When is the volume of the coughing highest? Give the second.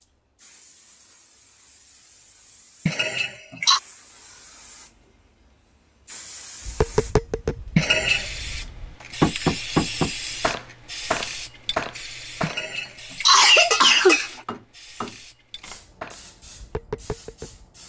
13 s.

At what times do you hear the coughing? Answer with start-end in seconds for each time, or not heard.
2.9-3.8, 7.8-8.3, 12.4-14.3.